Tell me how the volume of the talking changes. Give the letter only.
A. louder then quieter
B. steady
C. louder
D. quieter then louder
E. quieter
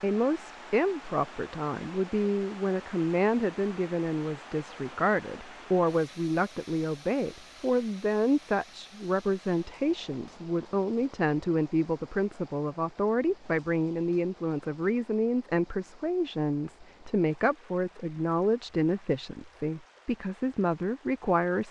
B.